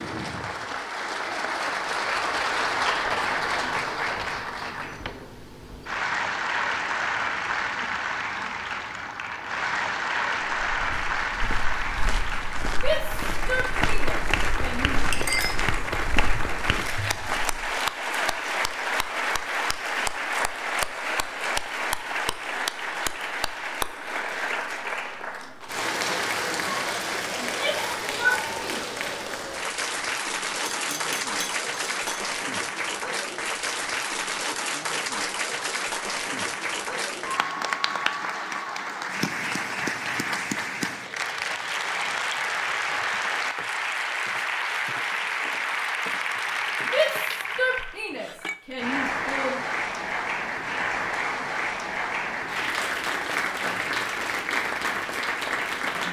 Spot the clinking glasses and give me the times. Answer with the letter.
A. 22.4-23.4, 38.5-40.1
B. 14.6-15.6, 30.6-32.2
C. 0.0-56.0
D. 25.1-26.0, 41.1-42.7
B.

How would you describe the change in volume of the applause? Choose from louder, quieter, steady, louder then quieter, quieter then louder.
steady.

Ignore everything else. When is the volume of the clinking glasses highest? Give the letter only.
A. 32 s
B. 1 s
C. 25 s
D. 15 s
D.